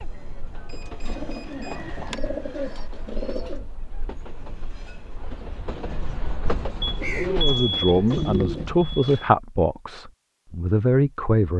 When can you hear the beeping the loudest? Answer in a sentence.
The volume of the beeping peaks at 8 seconds.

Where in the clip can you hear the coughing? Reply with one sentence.
The coughing can't be heard in this clip.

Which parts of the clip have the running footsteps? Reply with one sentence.
The running footsteps can't be heard in this clip.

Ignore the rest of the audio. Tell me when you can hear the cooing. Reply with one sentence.
The cooing can be heard from 1.0 to 3.6 s and from 7.0 to 8.7 s.